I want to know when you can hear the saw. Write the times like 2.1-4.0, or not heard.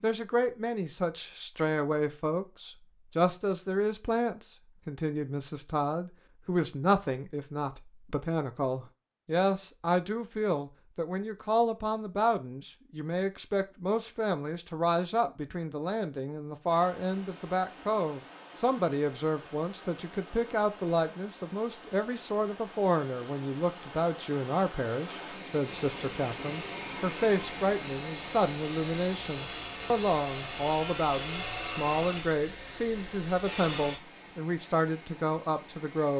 25.6-34.0.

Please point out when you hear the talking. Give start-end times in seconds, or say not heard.
0.0-36.1.